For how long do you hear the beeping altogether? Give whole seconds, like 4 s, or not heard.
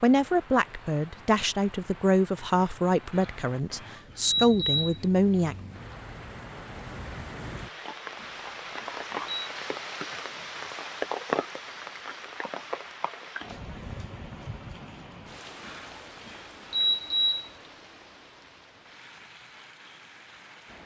5 s.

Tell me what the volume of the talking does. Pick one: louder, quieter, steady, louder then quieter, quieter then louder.
quieter then louder.